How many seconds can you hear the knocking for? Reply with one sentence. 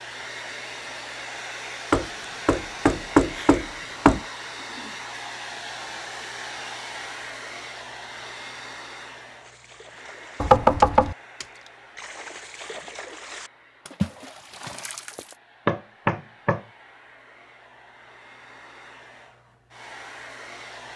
The knocking can be heard for 4 seconds in total.